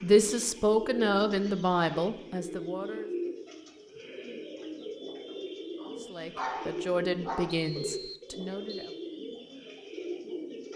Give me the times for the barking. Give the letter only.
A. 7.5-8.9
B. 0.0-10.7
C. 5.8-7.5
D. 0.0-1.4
C.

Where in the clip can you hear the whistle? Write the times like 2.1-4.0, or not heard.
7.5-8.9.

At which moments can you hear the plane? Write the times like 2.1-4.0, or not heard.
not heard.